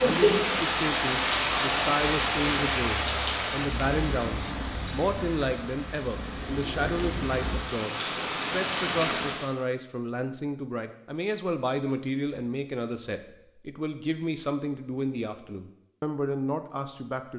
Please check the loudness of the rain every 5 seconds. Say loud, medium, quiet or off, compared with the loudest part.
loud, medium, off, off.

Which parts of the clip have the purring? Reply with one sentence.
You can't hear the purring here.